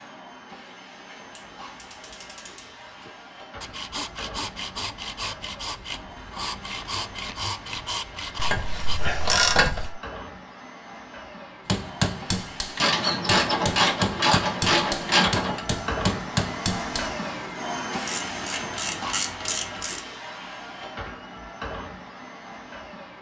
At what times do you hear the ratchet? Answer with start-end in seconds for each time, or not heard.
1.4-3.1, 8.3-9.9, 12.8-15.6, 18.1-20.0.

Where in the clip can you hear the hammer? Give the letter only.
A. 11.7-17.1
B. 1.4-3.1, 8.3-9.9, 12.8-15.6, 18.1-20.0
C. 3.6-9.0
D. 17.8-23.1
A.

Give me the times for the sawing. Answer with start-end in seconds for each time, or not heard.
3.6-9.0.